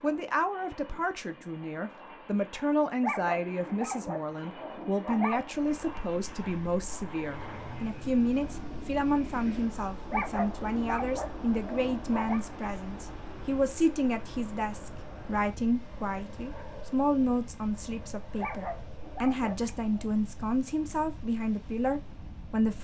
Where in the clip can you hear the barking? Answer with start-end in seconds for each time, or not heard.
3.0-5.5, 10.1-12.4, 18.4-20.1.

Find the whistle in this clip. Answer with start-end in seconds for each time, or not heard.
not heard.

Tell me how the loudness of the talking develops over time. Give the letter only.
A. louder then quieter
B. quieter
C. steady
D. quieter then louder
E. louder
C.